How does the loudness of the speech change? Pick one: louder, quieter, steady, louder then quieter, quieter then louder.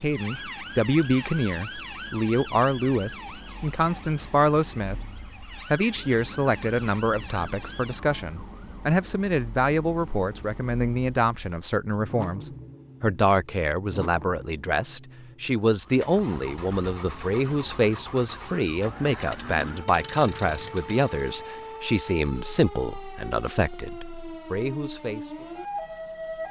steady.